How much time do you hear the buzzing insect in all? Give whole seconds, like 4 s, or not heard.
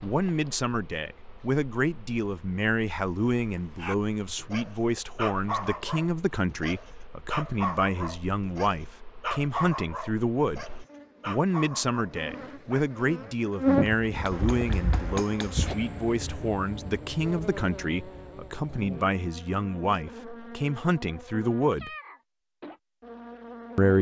24 s.